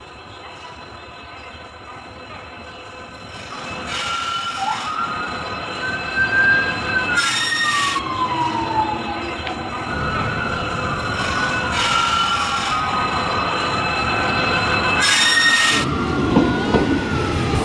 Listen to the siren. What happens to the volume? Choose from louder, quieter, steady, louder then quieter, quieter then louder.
quieter.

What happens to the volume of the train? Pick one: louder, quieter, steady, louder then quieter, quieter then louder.
louder.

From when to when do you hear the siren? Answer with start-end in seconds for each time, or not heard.
4.5-17.6.